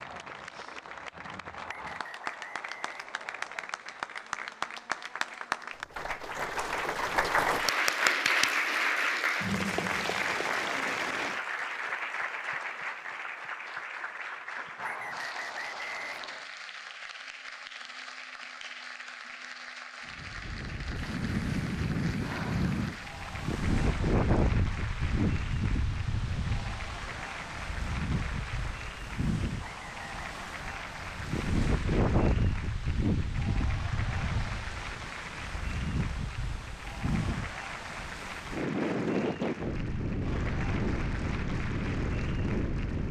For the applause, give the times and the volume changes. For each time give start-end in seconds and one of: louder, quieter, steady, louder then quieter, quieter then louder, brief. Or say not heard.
0.0-43.0 quieter.